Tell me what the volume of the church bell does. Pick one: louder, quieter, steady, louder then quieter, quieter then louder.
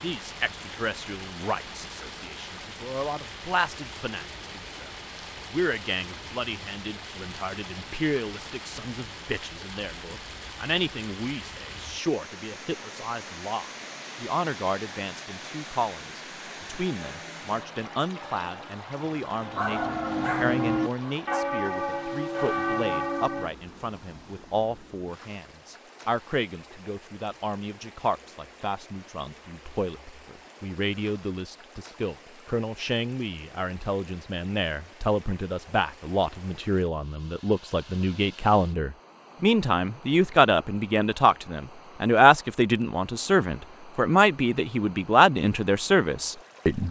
louder.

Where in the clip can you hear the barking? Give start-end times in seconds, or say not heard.
19.5-21.4.